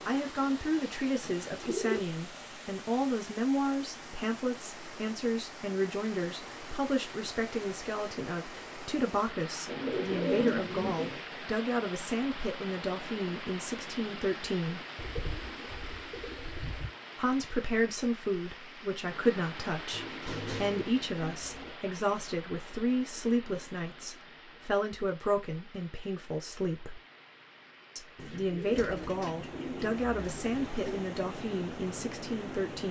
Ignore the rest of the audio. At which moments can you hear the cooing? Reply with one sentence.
The cooing can be heard from 1.2 to 2.0 s, from 9.7 to 11.2 s, from 14.9 to 16.9 s, from 19.9 to 21.8 s and from 28.1 to 31.0 s.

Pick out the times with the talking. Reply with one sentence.
You can hear the talking from 0.1 to 14.8 s, from 17.1 to 27.0 s and from 27.9 to 32.8 s.